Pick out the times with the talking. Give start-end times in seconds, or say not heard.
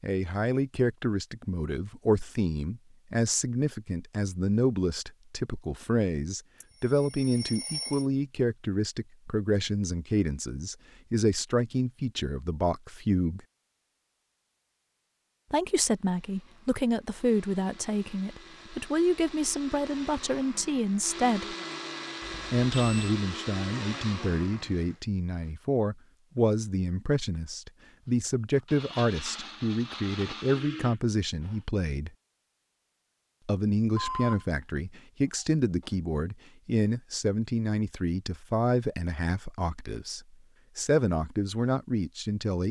0.0-13.4, 15.5-21.6, 22.5-32.1, 33.5-42.6.